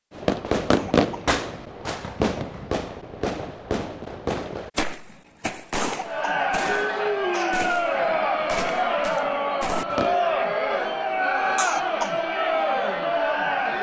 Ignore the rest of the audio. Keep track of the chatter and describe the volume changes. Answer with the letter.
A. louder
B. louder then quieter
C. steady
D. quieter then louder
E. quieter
C.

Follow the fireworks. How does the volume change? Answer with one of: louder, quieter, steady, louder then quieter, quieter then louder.
quieter.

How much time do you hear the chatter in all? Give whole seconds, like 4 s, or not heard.
8 s.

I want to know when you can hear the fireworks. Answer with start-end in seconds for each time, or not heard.
0.1-10.2.